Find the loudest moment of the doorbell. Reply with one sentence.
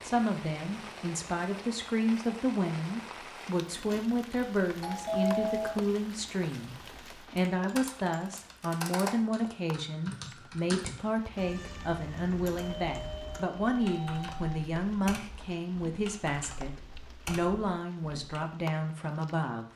The loudest moment of the doorbell is at 5 seconds.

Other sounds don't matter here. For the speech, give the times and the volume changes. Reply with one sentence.
The speech can be heard from 0.0 to 19.6 s, at a steady volume.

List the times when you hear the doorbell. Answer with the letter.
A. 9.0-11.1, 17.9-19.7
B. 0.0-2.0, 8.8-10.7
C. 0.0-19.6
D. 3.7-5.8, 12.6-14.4
D.